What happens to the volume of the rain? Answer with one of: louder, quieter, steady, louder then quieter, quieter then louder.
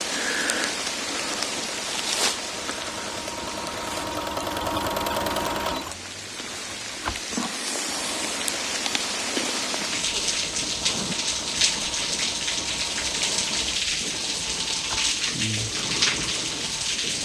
quieter then louder.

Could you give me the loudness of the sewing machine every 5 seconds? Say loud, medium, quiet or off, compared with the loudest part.
loud, loud, medium, medium.